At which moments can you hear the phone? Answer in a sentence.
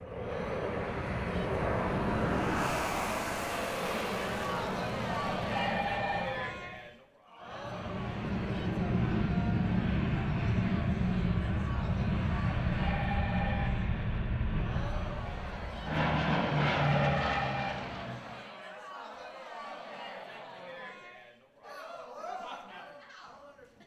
The phone can be heard from 5.5 to 6.4 s, from 12.8 to 13.8 s and from 16.8 to 17.9 s.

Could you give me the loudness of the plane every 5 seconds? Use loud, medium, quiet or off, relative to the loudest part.
loud, loud, loud, loud, off.